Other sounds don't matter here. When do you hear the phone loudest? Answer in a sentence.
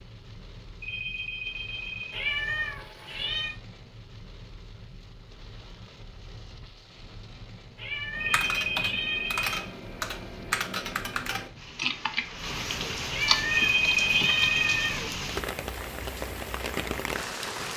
The volume of the phone peaks at 14 seconds.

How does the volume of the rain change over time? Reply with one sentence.
The loudness of the rain goes up.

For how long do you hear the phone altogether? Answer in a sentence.
The phone can be heard for 4 seconds in total.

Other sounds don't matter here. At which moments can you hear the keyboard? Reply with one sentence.
You can hear the keyboard from 8.2 to 14.5 s.